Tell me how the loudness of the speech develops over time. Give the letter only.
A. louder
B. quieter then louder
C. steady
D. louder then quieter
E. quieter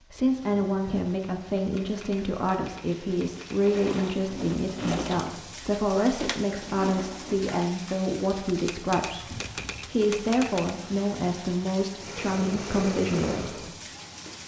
C.